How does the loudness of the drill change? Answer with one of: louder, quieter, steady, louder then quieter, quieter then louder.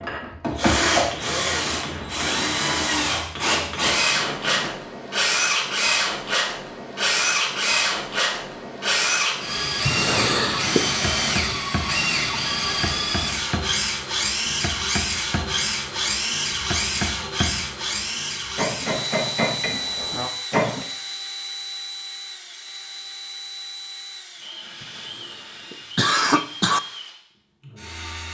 quieter.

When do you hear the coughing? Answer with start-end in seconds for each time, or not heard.
9.8-10.9, 24.8-26.8.